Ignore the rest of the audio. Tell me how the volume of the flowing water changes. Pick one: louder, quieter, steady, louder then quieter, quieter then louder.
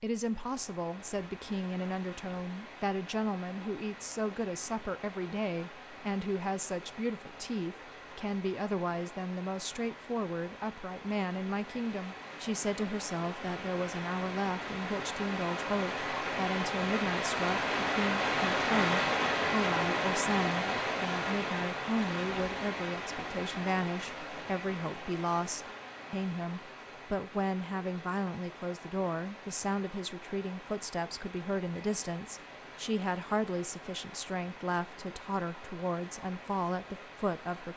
louder then quieter.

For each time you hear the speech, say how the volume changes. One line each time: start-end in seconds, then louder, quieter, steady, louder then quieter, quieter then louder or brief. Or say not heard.
0.0-37.7 steady.